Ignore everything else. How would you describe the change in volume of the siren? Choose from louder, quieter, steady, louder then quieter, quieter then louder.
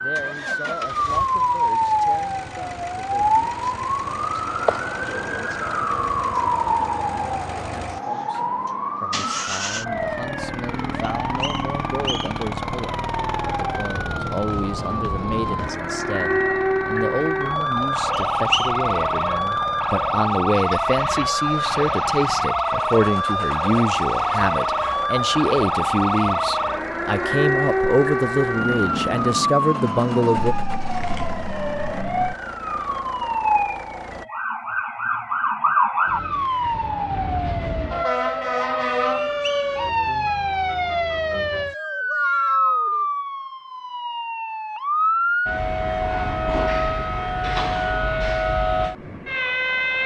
steady.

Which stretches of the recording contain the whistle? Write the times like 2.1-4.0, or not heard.
11.0-12.4, 18.1-18.7, 39.2-39.8.